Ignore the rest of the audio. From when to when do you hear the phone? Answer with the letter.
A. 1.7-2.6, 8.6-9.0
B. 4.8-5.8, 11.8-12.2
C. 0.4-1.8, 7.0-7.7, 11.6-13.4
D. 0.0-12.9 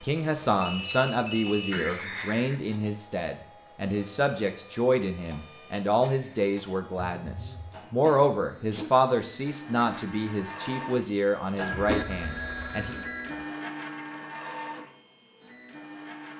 C.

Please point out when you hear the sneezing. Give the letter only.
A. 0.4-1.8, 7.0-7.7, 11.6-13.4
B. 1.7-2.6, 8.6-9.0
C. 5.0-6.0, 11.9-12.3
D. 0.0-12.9
B.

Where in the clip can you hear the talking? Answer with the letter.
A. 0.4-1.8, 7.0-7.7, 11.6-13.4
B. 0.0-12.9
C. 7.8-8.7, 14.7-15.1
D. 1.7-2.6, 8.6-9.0
B.